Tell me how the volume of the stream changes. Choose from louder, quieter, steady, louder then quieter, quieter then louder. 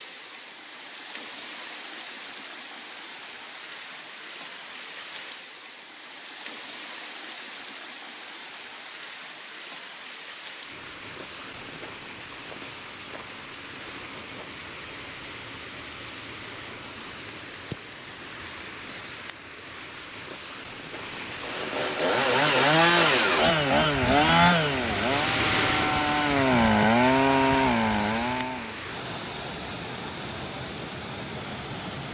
louder.